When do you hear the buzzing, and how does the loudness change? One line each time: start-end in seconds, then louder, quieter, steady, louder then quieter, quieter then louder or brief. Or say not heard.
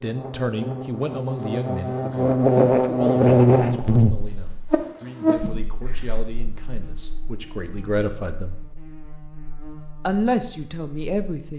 0.0-11.5 louder then quieter.